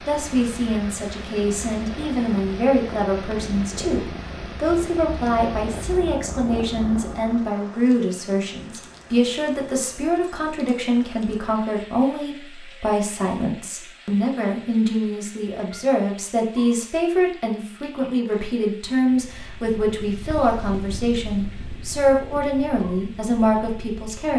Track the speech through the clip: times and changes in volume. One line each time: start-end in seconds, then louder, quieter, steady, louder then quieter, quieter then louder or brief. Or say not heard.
0.1-24.3 steady.